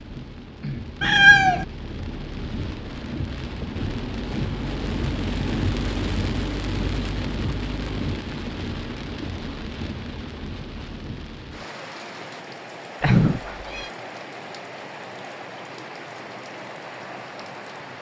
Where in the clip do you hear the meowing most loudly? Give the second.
1 s.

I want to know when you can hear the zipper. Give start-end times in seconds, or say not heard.
not heard.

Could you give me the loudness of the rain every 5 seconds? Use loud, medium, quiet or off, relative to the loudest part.
loud, loud, medium, medium.